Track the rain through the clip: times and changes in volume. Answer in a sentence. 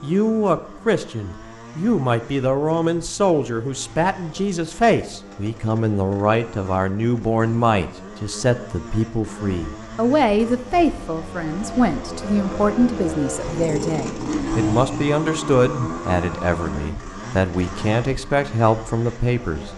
You can't hear the rain here.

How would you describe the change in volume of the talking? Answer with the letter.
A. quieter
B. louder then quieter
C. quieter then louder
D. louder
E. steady
E.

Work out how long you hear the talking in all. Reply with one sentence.
The talking can be heard for 20 seconds in total.